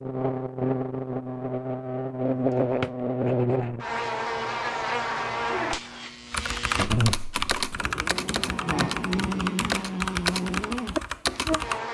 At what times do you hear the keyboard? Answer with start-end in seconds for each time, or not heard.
6.3-11.8.